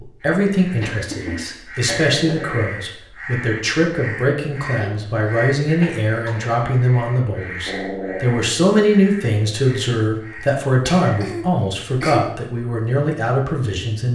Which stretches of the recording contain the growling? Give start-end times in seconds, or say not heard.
2.0-2.6, 7.7-8.4.